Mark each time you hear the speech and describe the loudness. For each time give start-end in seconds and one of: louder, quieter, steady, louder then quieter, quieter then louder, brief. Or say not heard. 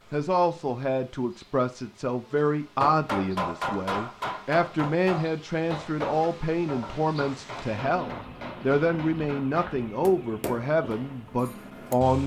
0.1-12.2 steady.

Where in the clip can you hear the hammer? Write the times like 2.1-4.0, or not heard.
2.8-12.2.